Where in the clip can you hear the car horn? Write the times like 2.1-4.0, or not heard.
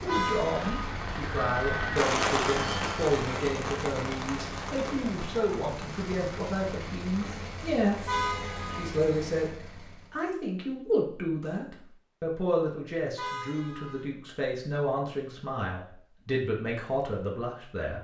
0.1-0.7, 8.1-8.9, 13.2-14.1.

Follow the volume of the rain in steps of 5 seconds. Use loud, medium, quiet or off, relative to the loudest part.
loud, quiet, off, off.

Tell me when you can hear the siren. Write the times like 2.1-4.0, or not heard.
not heard.